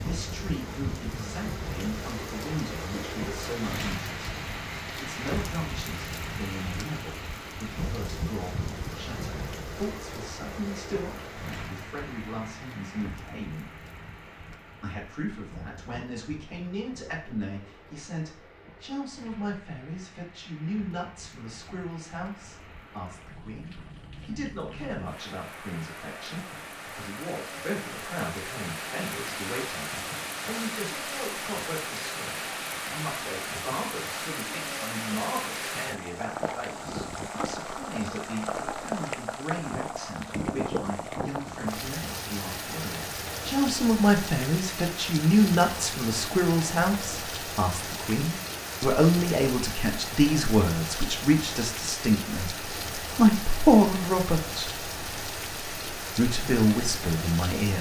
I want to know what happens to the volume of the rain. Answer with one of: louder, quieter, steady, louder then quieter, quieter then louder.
quieter then louder.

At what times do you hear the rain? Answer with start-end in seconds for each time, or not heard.
0.0-57.7.